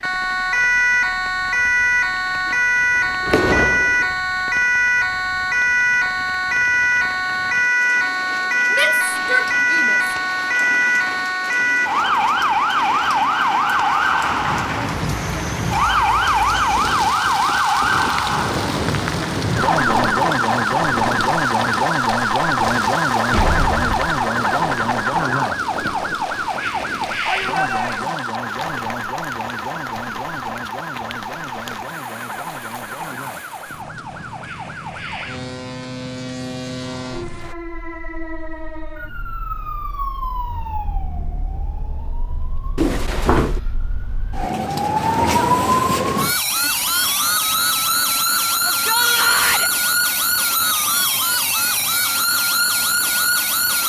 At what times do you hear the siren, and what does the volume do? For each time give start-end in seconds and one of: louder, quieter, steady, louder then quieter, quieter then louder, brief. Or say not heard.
0.0-53.8 quieter then louder.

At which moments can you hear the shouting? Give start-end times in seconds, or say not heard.
8.7-10.0, 27.2-28.2, 48.6-49.7.